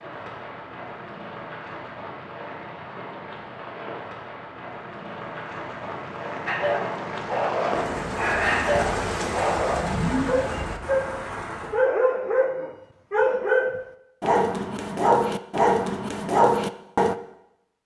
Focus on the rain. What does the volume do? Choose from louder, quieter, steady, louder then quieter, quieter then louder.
louder.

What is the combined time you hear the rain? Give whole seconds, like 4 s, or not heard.
12 s.